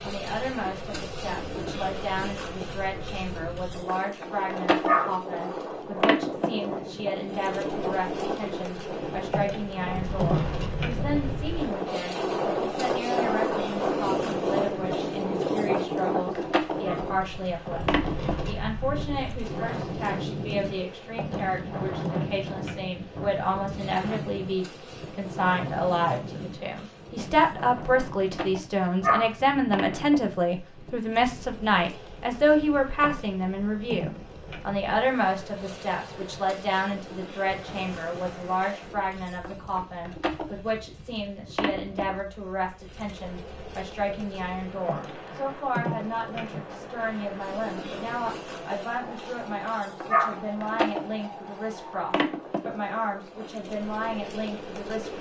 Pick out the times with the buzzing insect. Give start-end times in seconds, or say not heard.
0.0-55.1.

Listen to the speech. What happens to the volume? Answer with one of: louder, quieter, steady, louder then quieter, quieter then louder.
louder then quieter.